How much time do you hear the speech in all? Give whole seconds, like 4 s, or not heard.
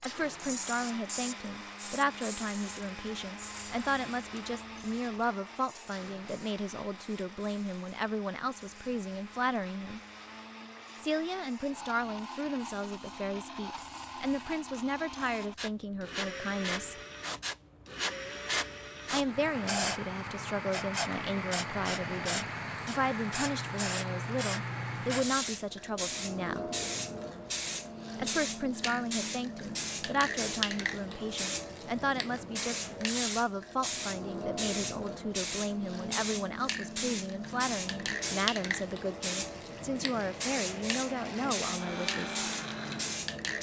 38 s.